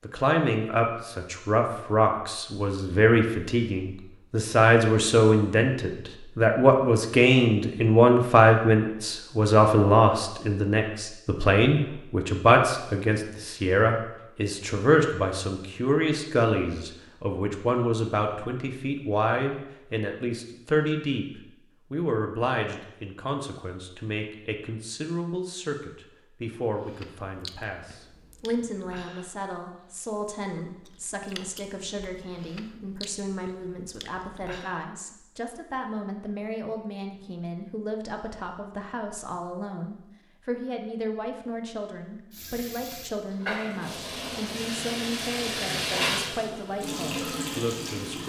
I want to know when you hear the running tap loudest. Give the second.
46 s.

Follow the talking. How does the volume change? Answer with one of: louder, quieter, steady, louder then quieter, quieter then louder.
quieter.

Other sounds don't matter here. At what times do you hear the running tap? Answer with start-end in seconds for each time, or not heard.
42.3-48.2.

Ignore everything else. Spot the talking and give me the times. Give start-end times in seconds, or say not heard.
0.1-48.2.